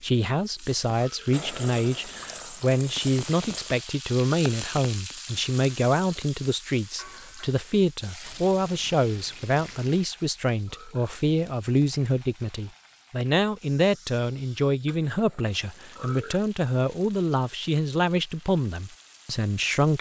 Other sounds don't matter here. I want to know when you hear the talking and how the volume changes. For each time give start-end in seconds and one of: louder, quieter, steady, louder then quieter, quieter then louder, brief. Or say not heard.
0.0-19.9 steady.